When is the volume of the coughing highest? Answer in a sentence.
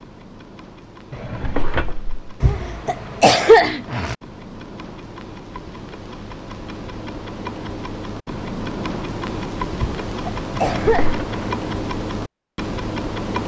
The volume of the coughing peaks at 3 seconds.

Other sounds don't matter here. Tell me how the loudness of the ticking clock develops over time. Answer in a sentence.
The volume of the ticking clock goes up.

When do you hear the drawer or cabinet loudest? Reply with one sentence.
The volume of the drawer or cabinet peaks at 2 seconds.